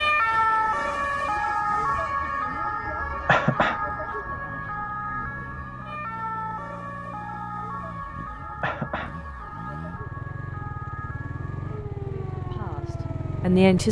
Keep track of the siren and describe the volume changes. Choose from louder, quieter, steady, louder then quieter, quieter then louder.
quieter.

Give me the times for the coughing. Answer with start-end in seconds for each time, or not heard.
3.2-3.8, 8.6-9.1.